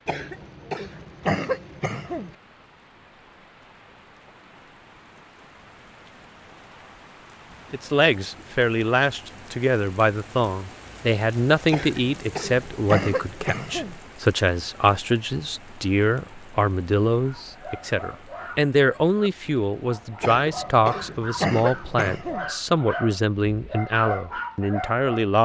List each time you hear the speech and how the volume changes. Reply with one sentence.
You can hear the speech from 7.7 to 25.4 s, at a steady volume.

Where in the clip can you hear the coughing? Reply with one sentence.
You can hear the coughing from 0.1 to 2.4 s, from 11.7 to 14.0 s and from 20.2 to 22.5 s.